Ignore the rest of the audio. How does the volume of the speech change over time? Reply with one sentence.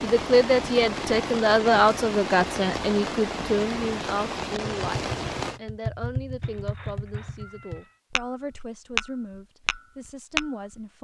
The loudness of the speech goes down.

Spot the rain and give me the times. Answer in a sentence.
You can hear the rain from 0.0 to 5.6 s.